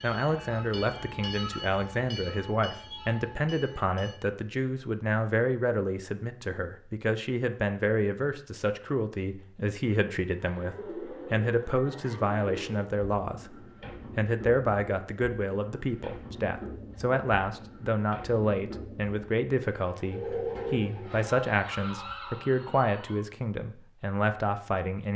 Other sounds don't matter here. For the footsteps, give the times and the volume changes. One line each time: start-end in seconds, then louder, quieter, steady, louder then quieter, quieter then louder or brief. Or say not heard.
not heard.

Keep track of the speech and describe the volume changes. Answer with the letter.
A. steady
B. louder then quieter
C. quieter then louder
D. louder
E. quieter
A.